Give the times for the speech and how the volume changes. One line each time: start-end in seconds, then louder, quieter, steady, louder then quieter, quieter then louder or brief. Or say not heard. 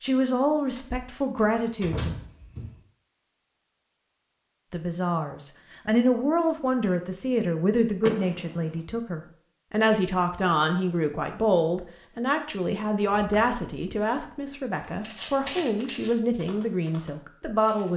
0.0-2.1 brief
4.7-17.9 steady.